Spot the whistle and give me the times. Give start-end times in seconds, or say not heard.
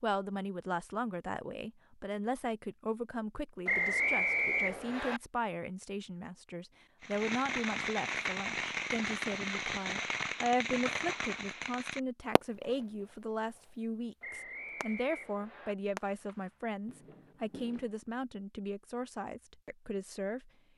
3.6-5.2, 14.2-15.8.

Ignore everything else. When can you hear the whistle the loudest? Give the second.
4 s.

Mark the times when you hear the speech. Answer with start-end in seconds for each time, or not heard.
0.0-20.5.